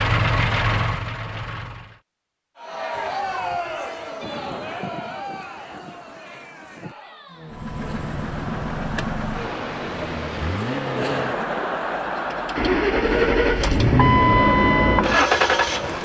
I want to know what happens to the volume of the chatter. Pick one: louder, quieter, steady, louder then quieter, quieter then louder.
quieter then louder.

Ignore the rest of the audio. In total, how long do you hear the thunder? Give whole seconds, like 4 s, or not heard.
4 s.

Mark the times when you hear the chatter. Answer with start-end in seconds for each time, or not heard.
2.5-16.0.